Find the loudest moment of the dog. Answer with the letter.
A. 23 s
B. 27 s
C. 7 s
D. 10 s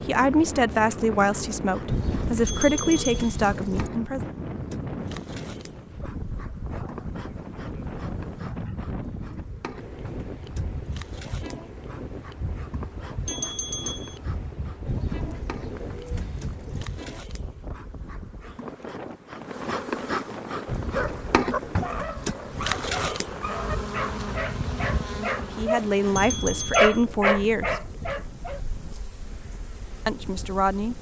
B.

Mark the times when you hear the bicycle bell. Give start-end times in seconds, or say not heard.
2.5-3.4, 13.2-14.2, 26.1-27.1.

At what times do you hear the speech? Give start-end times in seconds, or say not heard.
0.0-4.2, 25.4-27.8, 30.1-30.9.